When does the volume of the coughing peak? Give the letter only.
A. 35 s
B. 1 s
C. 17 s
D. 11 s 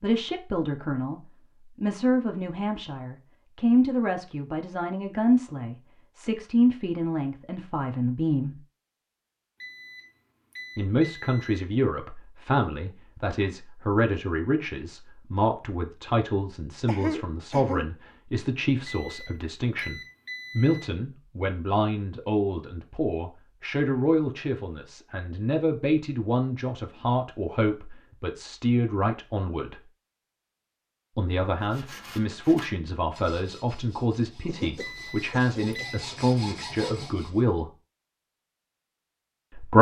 C.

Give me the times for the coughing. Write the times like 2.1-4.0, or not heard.
16.9-17.9, 34.5-35.9.